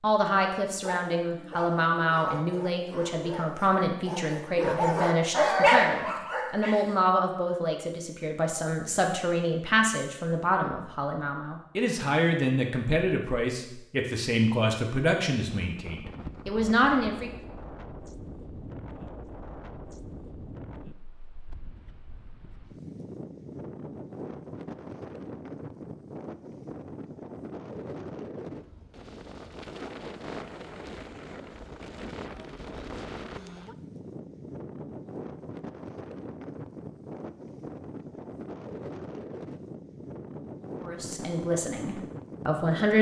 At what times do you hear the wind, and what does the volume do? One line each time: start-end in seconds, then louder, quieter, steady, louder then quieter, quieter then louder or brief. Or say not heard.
15.6-42.9 steady.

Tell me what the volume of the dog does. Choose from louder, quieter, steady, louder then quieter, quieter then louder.
louder.